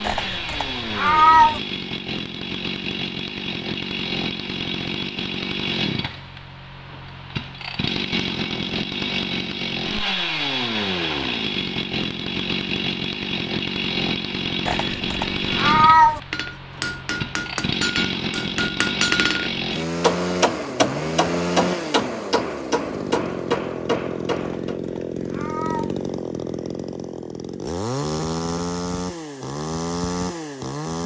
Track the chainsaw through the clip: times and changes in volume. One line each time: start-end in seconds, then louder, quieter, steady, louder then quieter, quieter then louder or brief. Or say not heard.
0.0-31.0 steady.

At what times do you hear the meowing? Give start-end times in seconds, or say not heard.
0.0-1.6, 14.7-16.2, 24.4-25.9.